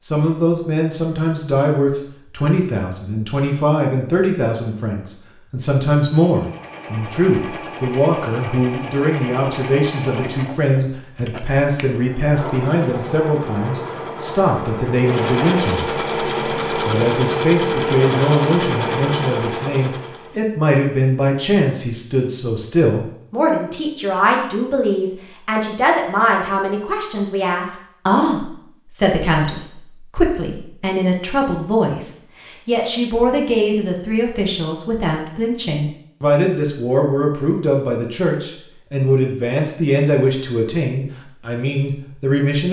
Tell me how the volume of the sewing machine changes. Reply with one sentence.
The loudness of the sewing machine goes up.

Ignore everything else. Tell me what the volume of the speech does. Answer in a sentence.
The volume of the speech stays about the same.